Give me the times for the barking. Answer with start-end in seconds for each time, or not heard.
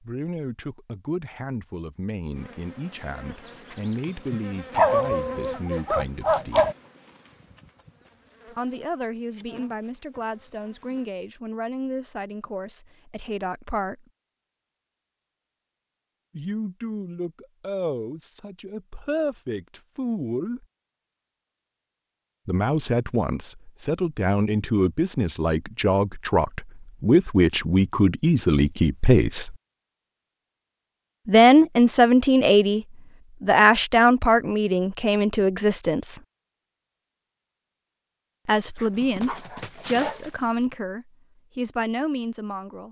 4.8-6.8, 38.8-40.6.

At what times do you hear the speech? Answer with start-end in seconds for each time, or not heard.
0.0-6.7, 8.4-14.1, 16.4-20.6, 22.4-29.6, 31.2-36.2, 38.5-42.8.